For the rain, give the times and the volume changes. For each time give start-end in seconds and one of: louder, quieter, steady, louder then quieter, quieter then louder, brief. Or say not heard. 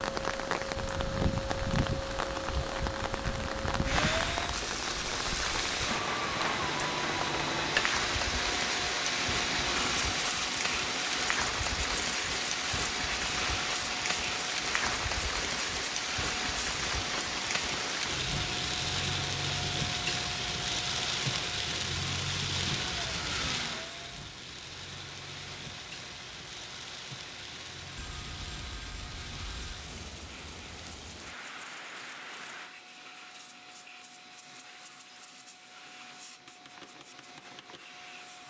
0.0-32.8 quieter.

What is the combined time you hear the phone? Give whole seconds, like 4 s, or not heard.
2 s.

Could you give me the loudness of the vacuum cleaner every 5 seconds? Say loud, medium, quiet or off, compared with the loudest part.
loud, loud, loud, medium, medium, quiet, quiet, quiet.